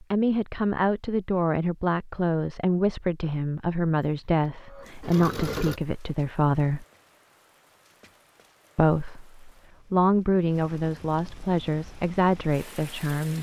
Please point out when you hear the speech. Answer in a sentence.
You can hear the speech from 0.0 to 6.8 s and from 8.8 to 13.3 s.